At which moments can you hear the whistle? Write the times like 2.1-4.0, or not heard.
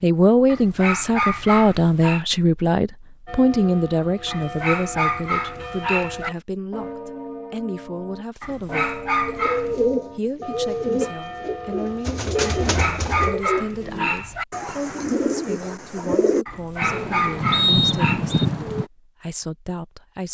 17.5-18.4.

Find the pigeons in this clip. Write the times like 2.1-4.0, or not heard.
9.2-18.9.